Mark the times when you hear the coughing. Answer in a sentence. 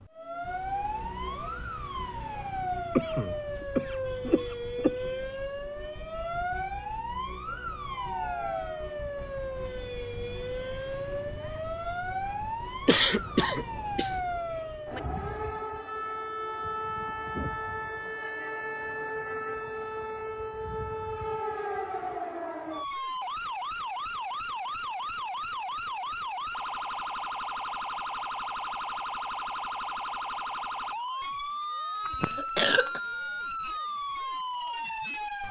The coughing can be heard from 3.0 to 5.1 s, from 12.8 to 14.2 s and from 32.0 to 33.0 s.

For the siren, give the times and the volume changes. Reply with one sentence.
The siren can be heard from 0.0 to 35.4 s, at a steady volume.